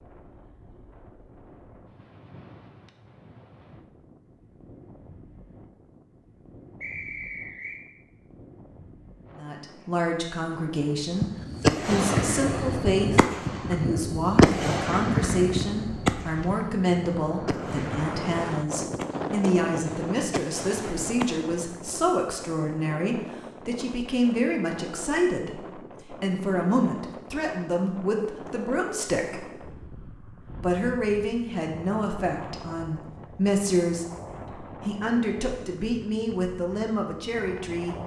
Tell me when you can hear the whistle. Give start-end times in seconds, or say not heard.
6.8-7.8.